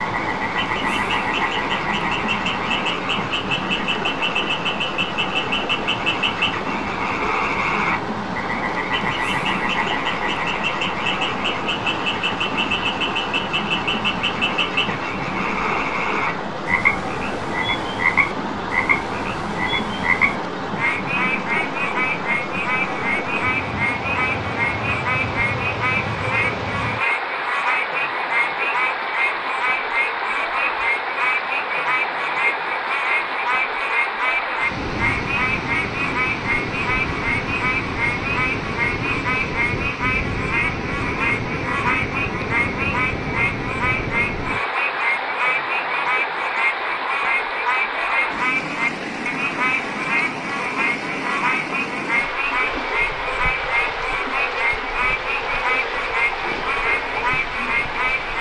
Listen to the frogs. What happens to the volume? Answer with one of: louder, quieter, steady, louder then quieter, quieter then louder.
steady.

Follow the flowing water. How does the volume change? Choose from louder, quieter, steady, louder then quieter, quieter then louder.
steady.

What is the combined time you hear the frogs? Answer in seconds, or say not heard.
58 s.